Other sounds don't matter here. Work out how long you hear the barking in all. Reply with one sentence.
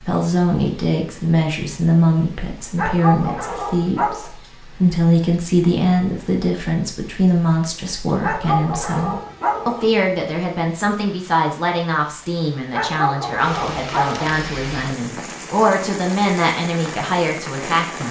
The barking can be heard for 5 seconds in total.